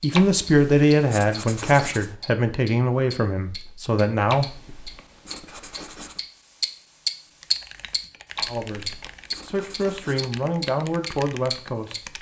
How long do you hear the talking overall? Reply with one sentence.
You can hear the talking for 8 seconds altogether.